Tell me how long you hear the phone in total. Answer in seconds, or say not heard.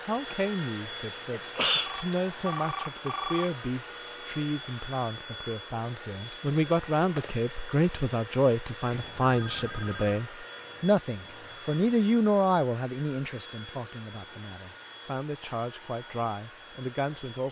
3 s.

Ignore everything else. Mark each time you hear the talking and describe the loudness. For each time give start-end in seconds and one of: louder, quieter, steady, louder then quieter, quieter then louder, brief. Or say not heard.
0.0-17.4 louder then quieter.